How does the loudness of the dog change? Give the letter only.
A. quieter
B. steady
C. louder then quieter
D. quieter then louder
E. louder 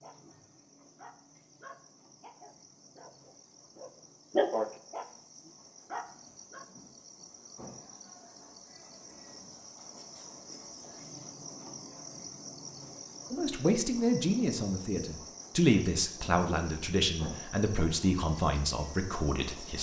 C.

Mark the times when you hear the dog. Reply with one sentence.
The dog can be heard from 0.0 to 6.7 s.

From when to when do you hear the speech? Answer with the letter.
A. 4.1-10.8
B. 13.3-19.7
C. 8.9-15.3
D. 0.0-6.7
B.